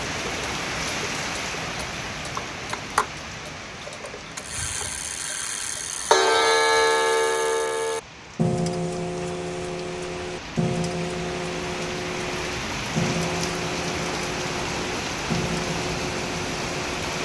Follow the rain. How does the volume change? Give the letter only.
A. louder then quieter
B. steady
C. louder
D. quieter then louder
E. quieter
D.